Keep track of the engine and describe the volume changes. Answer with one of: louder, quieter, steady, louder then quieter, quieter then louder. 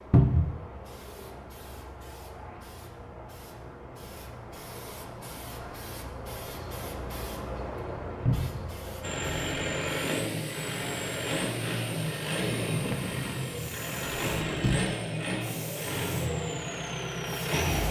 steady.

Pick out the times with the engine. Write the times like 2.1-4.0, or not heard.
9.0-17.8.